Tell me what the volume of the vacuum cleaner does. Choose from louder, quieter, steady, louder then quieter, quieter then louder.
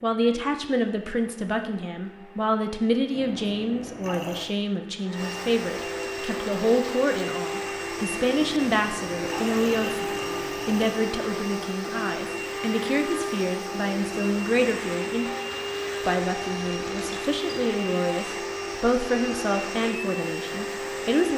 louder.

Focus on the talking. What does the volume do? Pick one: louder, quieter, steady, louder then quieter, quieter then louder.
steady.